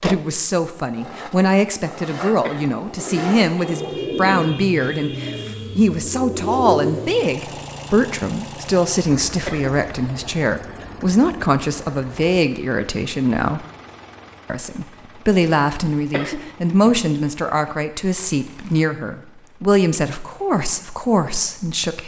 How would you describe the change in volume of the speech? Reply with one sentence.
The loudness of the speech stays about the same.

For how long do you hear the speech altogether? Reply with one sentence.
The speech can be heard for 21 seconds in total.